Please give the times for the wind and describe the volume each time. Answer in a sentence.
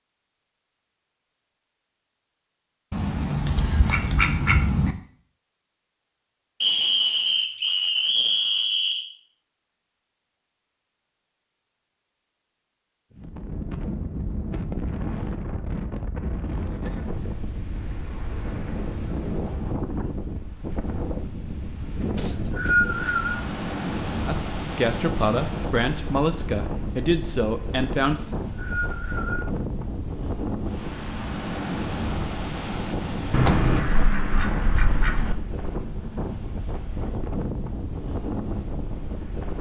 The wind can be heard from 13.1 to 39.5 s, at a steady volume.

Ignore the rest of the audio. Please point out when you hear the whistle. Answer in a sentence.
You can hear the whistle from 6.6 to 9.1 s, from 22.1 to 23.4 s and from 28.1 to 29.4 s.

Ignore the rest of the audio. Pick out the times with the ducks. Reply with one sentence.
You can hear the ducks from 2.9 to 5.0 s and from 33.3 to 35.4 s.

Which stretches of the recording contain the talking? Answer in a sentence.
You can hear the talking from 24.2 to 28.2 s.